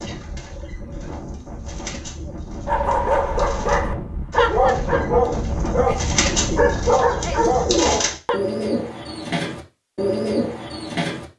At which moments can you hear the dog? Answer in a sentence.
The dog can be heard from 2.6 to 8.4 s.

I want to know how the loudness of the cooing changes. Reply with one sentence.
The volume of the cooing goes up.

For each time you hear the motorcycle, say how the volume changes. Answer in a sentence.
The motorcycle can't be heard in this clip.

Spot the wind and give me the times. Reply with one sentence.
The wind can be heard from 0.0 to 8.2 s.